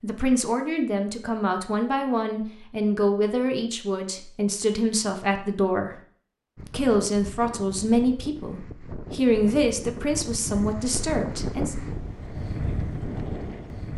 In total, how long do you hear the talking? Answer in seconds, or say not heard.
11 s.